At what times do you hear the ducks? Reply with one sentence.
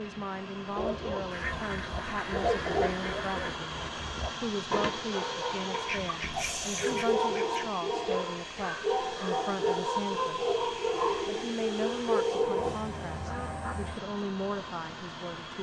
The ducks can be heard from 1.3 to 3.6 s, from 5.7 to 7.7 s and from 12.6 to 13.9 s.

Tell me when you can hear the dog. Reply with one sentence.
The dog can be heard from 0.8 to 12.8 s.